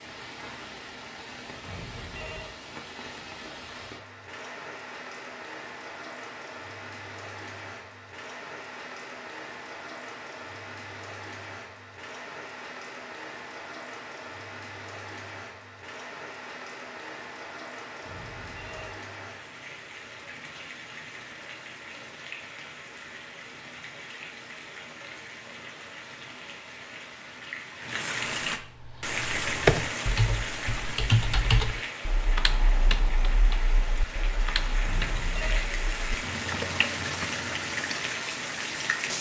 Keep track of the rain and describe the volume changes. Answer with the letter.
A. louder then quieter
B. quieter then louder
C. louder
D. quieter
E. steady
C.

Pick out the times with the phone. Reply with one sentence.
You can hear the phone from 1.6 to 2.5 s, from 18.0 to 19.0 s and from 34.8 to 35.7 s.